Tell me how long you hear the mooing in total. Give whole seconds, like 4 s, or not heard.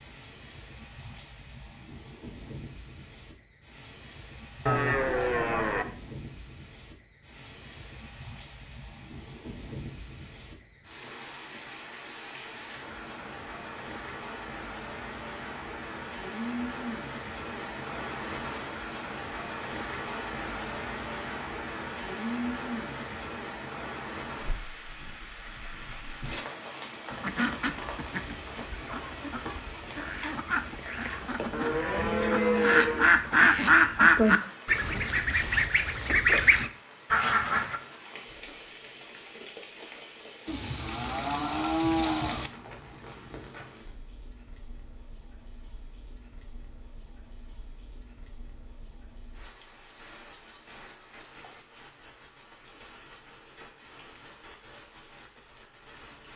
5 s.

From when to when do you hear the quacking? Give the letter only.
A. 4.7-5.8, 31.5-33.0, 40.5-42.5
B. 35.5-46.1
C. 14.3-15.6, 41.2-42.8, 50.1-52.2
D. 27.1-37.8
D.